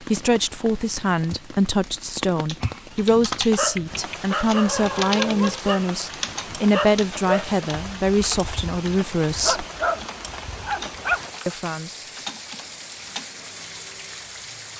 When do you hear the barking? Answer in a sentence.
The barking can be heard from 2.6 to 11.2 s.